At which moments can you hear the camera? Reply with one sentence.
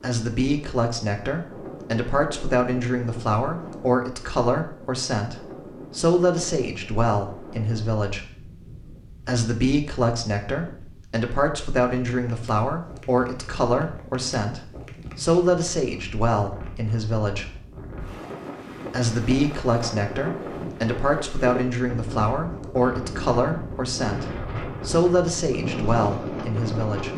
You can't hear the camera here.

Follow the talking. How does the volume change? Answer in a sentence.
The loudness of the talking stays about the same.